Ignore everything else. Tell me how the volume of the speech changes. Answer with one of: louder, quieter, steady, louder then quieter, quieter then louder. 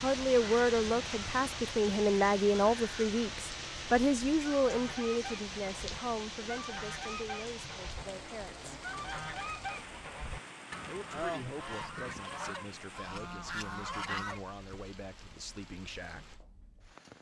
quieter.